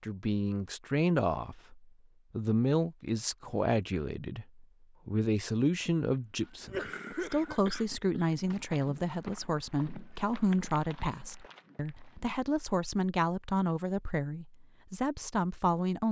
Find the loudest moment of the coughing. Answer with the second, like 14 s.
7 s.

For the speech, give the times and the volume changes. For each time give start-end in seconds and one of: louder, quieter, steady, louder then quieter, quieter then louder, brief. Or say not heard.
0.0-16.0 steady.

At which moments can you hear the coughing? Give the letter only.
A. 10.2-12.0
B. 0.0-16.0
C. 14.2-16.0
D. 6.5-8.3
D.